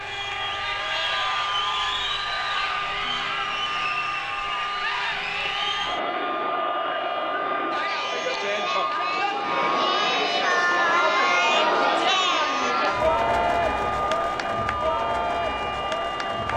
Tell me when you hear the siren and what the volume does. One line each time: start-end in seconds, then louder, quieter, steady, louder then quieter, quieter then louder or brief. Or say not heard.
0.0-16.5 steady.